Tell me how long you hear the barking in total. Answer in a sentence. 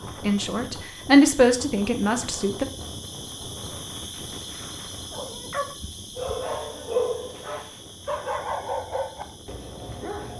You can hear the barking for 5 seconds altogether.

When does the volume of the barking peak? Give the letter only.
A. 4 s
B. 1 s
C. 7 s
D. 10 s
C.